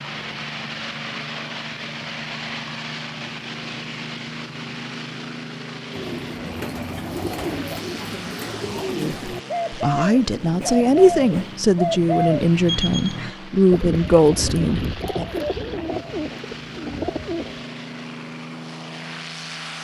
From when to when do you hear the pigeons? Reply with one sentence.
The pigeons can be heard from 5.9 to 17.6 s.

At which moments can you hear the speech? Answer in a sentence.
The speech can be heard from 8.9 to 15.2 s.